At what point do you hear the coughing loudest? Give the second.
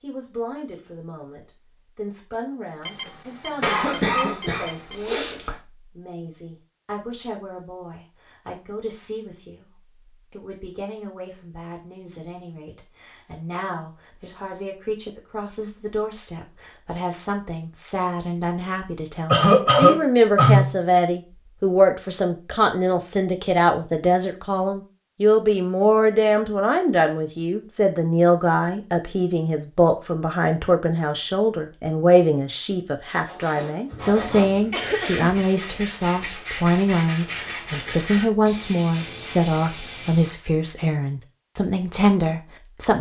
20 s.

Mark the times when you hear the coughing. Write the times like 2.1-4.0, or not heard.
3.6-5.5, 19.3-20.8, 33.9-35.4.